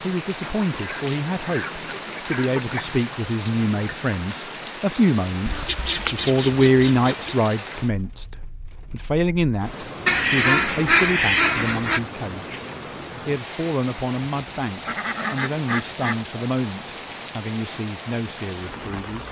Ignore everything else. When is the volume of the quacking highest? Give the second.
11 s.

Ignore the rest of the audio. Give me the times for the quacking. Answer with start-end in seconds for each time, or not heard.
0.4-3.0, 5.5-7.3, 10.1-12.0, 14.8-16.2.